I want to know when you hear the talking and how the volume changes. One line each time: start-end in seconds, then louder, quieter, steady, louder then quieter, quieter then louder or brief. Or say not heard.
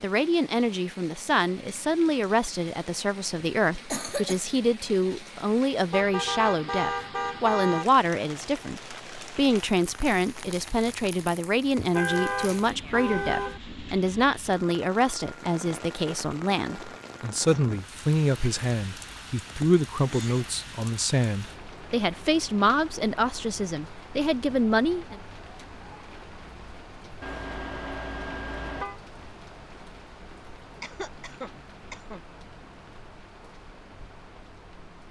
0.0-25.2 steady.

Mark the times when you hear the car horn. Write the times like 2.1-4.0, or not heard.
5.9-7.9, 11.8-13.6, 27.2-29.0.